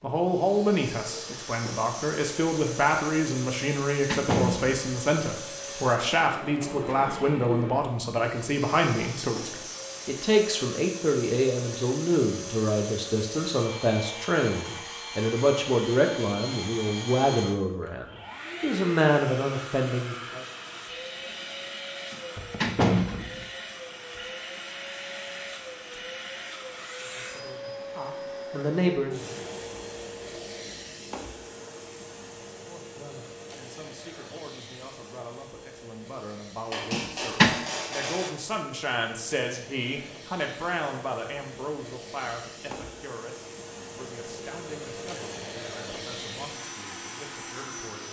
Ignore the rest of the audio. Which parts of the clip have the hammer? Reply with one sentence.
You can hear the hammer from 36.7 to 38.3 s.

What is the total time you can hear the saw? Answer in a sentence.
You can't hear the saw here.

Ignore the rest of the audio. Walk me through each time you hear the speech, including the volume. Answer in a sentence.
You can hear the speech from 0.0 to 20.4 s, at a steady volume; briefly from 27.0 to 29.3 s; and from 32.6 to 48.0 s, getting louder then quieter.